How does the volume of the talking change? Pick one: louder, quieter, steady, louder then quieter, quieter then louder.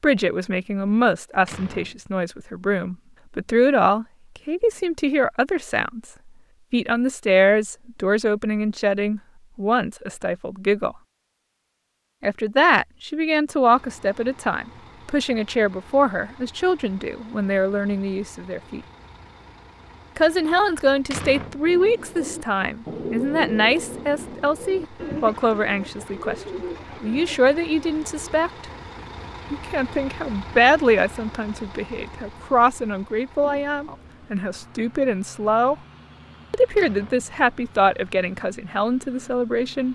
steady.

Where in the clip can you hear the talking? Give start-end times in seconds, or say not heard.
0.0-6.0, 6.7-10.9, 12.2-18.8, 20.1-28.6, 29.5-35.8, 36.5-39.9.